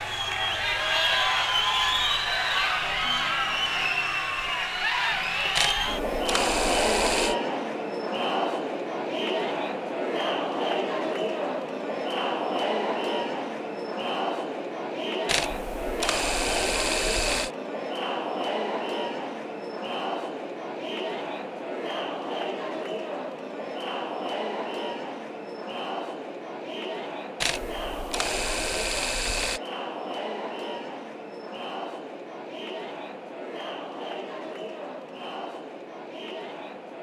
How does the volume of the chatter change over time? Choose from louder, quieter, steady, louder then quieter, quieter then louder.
quieter.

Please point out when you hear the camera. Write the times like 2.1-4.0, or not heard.
5.5-7.3, 15.2-17.5, 27.4-29.6.